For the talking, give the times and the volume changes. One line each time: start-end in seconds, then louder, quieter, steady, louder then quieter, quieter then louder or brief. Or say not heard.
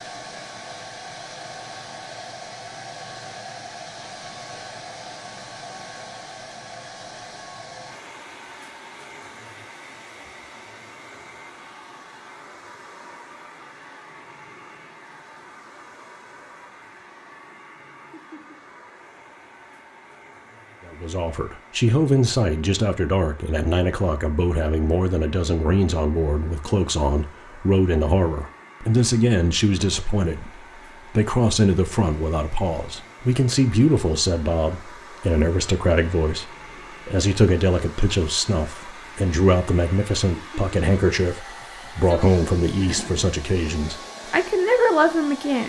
20.9-45.6 steady.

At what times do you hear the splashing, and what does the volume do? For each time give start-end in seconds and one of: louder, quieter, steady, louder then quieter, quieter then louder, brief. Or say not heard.
not heard.